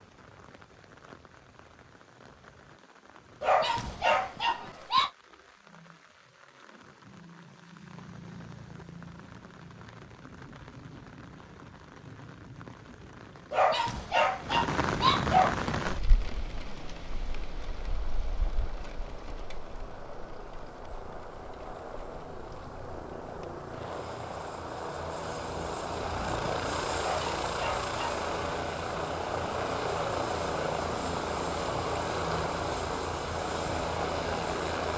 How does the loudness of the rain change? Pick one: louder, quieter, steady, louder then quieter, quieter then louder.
louder then quieter.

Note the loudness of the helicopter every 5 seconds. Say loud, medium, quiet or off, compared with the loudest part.
off, off, off, quiet, medium, loud, loud.